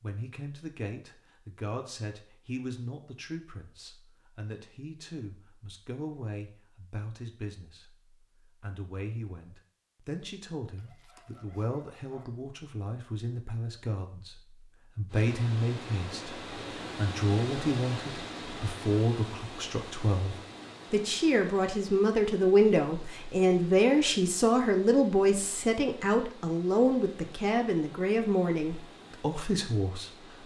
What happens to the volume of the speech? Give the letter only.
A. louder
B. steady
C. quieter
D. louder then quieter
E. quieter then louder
A.